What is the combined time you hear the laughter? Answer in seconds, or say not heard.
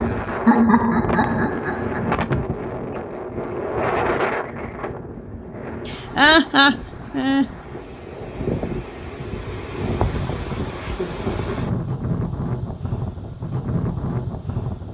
4 s.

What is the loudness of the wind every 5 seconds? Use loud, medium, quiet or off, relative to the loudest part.
loud, medium, loud.